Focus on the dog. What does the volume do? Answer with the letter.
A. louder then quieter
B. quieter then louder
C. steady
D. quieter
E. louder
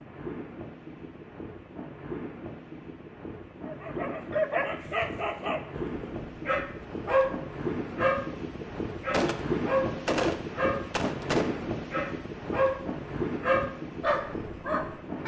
C.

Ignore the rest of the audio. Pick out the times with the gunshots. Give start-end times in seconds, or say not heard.
9.1-11.5.